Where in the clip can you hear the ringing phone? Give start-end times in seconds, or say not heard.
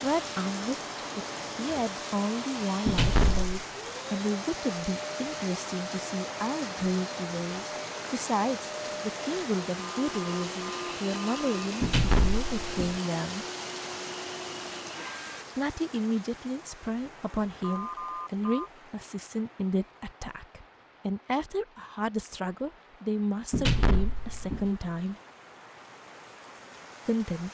9.8-11.7, 17.6-18.7.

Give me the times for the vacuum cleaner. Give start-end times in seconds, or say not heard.
0.0-15.4.